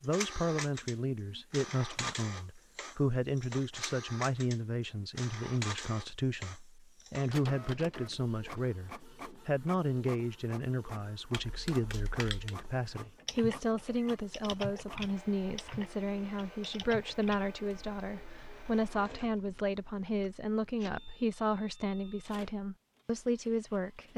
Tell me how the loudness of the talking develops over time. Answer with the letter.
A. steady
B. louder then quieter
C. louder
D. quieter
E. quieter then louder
A.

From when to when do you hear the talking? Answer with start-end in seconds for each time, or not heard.
0.0-24.1.